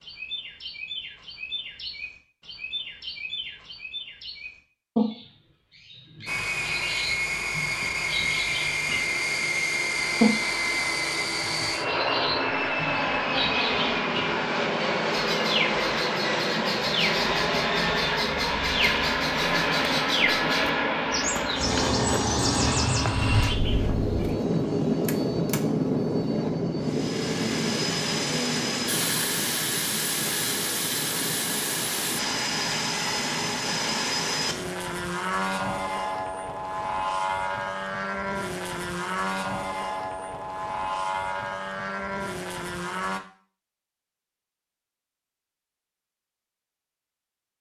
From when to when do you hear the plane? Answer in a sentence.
You can hear the plane from 6.2 to 43.2 s.